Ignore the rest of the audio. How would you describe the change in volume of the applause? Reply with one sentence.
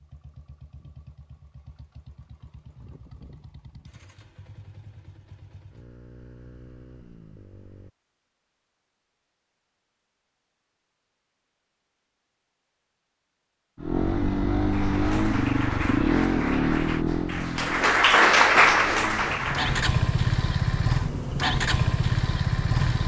The loudness of the applause goes up.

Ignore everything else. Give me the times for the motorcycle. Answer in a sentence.
You can hear the motorcycle from 0.0 to 7.9 s and from 13.8 to 23.0 s.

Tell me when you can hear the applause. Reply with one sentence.
The applause can be heard from 14.6 to 19.9 s.